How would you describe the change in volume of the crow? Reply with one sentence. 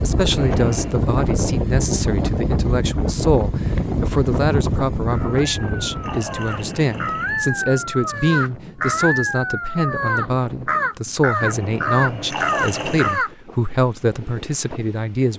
The loudness of the crow goes up.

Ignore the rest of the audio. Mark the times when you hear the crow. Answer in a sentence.
You can hear the crow from 5.0 to 13.3 s.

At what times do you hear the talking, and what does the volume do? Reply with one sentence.
You can hear the talking from 0.0 to 15.3 s, at a steady volume.